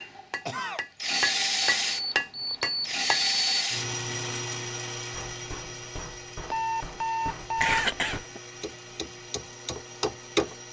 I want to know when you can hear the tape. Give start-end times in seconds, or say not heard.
not heard.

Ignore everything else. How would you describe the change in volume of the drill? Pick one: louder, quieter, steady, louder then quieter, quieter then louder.
quieter.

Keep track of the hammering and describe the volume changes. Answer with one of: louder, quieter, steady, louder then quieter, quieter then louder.
quieter then louder.